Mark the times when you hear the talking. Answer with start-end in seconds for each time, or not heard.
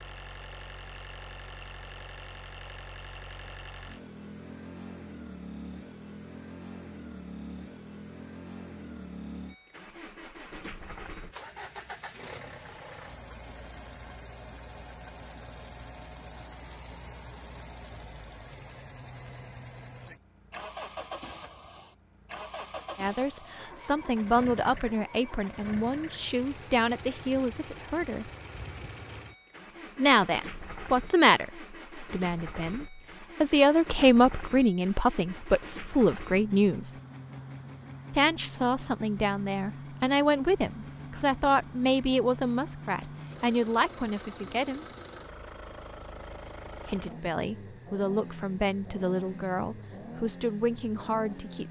22.9-28.3, 29.9-36.9, 38.1-44.9, 46.9-51.6.